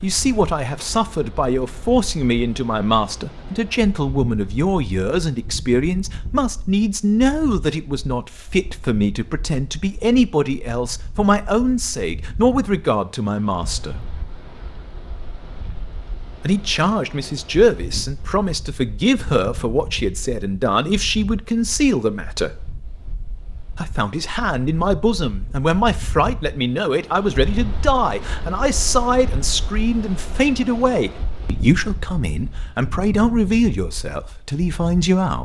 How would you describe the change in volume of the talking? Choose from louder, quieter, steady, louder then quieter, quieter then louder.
steady.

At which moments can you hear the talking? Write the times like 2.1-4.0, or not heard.
0.0-14.0, 16.4-22.5, 23.8-35.3.